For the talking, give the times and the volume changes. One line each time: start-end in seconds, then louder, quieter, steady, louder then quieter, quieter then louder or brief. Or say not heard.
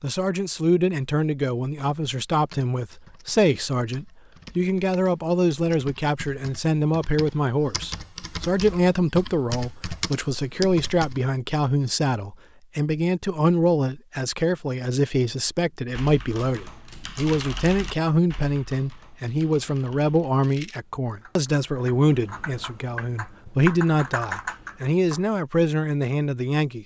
0.0-26.8 steady.